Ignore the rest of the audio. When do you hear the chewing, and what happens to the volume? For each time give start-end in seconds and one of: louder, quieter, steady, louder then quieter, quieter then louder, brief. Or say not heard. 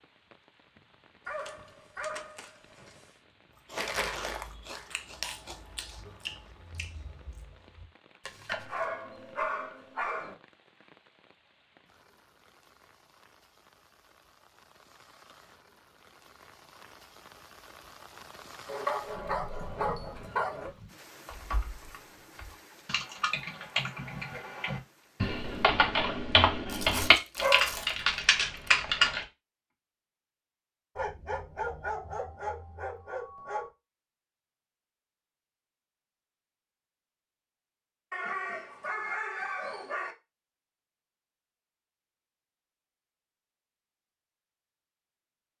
3.5-8.8 quieter.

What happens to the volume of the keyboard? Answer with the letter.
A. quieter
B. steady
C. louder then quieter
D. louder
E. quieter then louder
D.